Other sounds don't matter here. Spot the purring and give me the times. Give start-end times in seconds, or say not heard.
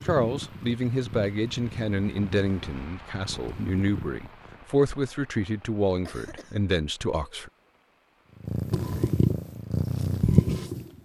0.0-4.6, 8.4-10.9.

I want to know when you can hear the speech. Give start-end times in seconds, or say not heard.
0.1-7.5.